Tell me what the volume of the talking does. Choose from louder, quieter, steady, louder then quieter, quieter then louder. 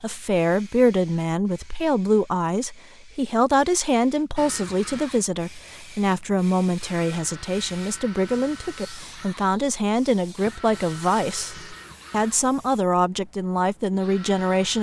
steady.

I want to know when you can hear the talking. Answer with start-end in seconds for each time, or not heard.
0.0-14.7.